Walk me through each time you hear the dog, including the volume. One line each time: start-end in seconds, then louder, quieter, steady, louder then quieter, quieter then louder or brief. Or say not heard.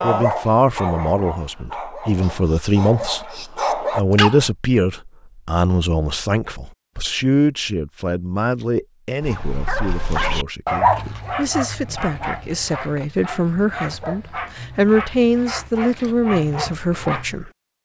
0.0-4.5 quieter then louder
9.2-17.4 quieter.